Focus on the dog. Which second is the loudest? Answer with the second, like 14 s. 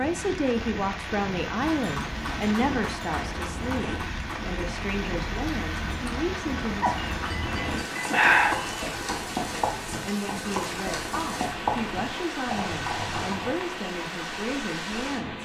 8 s.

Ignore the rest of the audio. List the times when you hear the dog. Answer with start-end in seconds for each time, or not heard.
6.8-8.8.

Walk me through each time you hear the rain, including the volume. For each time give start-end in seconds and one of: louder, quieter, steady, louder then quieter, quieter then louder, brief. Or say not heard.
0.0-15.3 steady.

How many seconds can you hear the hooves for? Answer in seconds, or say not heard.
12 s.